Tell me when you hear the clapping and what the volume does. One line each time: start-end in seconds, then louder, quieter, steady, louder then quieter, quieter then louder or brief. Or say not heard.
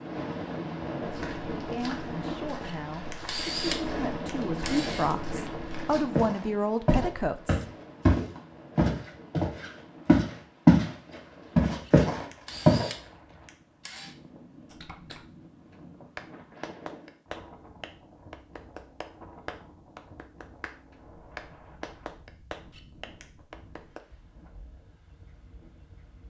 14.7-24.0 steady.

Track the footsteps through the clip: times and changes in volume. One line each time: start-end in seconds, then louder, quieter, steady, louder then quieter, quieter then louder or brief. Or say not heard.
1.0-10.9 louder
11.6-12.8 brief.